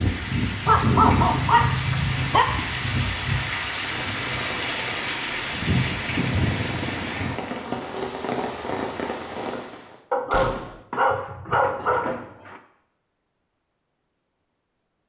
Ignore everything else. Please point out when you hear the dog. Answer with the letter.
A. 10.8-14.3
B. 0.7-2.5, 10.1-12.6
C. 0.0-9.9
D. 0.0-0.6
B.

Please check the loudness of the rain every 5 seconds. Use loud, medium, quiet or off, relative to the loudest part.
loud, loud, off.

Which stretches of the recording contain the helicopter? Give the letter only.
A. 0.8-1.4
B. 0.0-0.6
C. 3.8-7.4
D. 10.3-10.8
C.